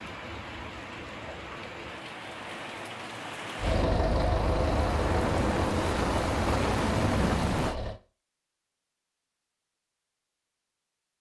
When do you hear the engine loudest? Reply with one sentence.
The volume of the engine peaks at 4 seconds.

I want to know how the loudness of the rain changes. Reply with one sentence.
The loudness of the rain goes up.